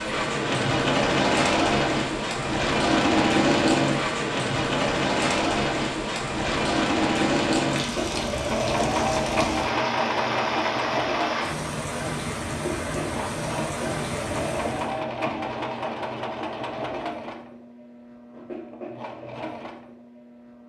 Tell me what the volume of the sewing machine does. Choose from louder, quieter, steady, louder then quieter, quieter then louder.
quieter.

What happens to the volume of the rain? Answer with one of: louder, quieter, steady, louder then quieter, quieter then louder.
steady.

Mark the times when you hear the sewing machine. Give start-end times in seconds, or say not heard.
0.0-20.6.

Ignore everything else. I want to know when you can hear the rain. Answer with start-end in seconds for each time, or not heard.
0.0-15.0.